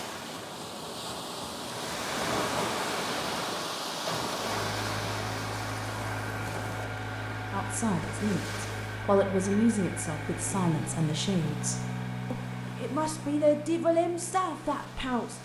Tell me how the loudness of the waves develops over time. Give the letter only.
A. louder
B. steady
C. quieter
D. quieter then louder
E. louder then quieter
C.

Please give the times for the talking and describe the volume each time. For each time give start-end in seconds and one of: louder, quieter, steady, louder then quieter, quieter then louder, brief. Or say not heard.
7.5-15.3 steady.